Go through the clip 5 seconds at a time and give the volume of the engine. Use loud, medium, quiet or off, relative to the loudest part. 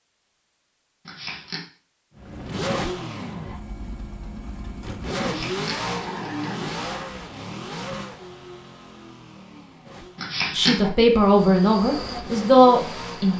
loud, loud, medium.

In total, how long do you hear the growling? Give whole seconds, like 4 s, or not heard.
3 s.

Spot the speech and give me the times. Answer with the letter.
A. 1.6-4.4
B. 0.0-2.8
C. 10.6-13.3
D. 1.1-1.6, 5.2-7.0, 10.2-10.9
C.